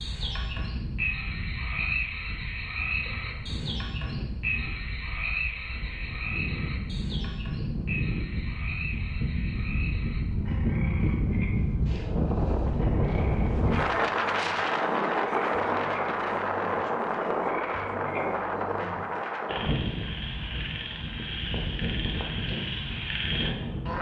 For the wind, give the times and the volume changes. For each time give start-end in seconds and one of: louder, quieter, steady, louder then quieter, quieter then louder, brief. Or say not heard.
0.0-23.9 louder then quieter.